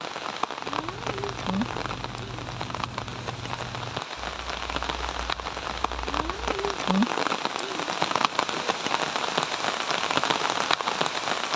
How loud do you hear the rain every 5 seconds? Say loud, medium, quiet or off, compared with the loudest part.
medium, loud, loud.